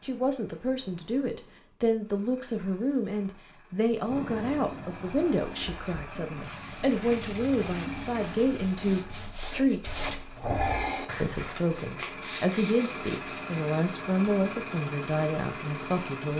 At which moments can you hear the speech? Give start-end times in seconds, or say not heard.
0.0-9.9, 11.2-16.3.